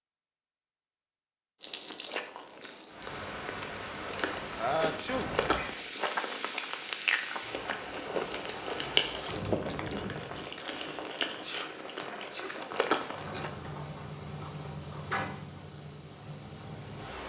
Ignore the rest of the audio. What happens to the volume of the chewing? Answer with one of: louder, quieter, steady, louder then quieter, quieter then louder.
louder.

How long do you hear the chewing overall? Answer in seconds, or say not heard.
12 s.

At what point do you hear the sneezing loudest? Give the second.
5 s.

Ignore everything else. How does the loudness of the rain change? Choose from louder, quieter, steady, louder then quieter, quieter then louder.
steady.